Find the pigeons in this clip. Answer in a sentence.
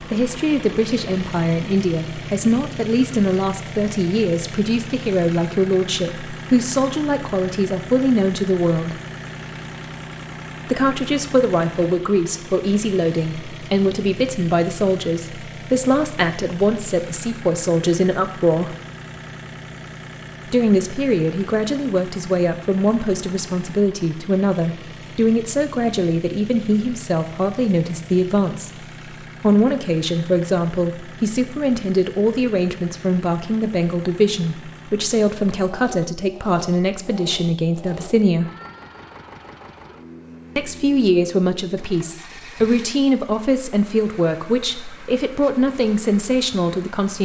The pigeons can't be heard in this clip.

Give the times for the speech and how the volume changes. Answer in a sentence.
The speech can be heard from 0.0 to 8.9 s, at a steady volume; from 10.7 to 18.8 s, at a steady volume; from 20.4 to 38.5 s, at a steady volume; and from 40.5 to 47.2 s, at a steady volume.